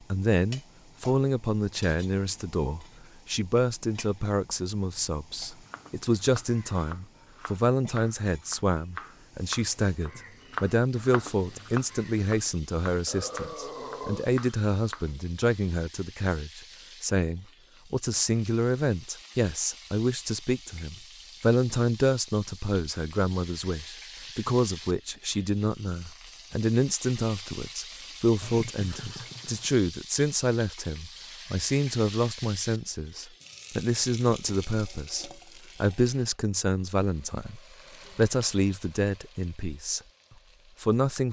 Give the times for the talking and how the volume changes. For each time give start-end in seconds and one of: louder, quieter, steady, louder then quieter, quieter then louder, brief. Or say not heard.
0.1-40.0 steady
40.8-41.2 brief.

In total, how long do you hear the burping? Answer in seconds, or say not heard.
3 s.